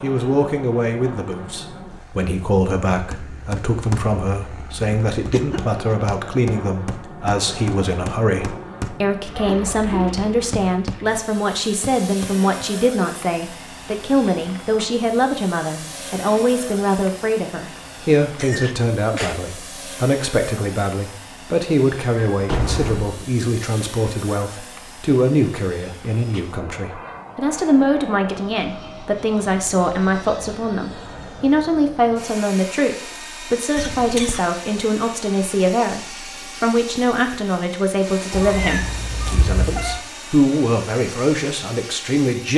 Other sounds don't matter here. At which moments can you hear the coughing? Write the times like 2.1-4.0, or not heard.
5.3-6.0, 18.4-19.4, 33.8-34.6.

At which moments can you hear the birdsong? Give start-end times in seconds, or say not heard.
not heard.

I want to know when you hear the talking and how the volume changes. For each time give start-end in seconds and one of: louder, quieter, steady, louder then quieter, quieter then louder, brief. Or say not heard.
0.0-42.5 steady.